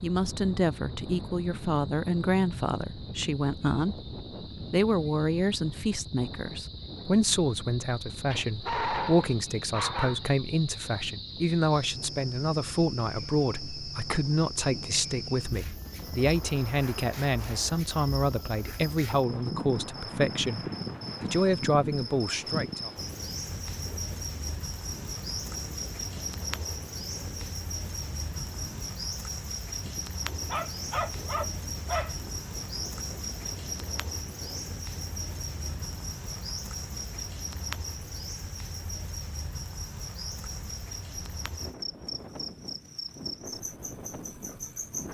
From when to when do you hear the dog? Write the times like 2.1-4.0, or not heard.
8.3-10.2, 30.5-32.1.